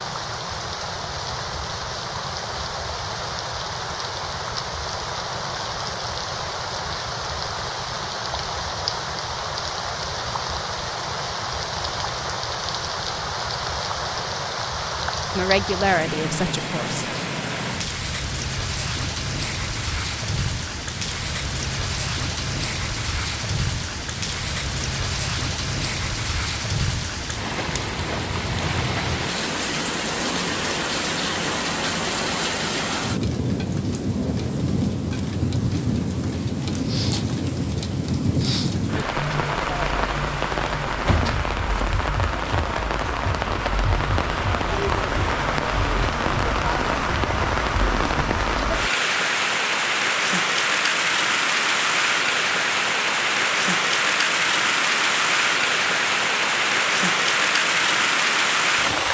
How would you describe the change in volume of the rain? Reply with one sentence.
The volume of the rain goes up.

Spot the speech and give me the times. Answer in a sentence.
The speech can be heard from 15.3 to 17.1 s.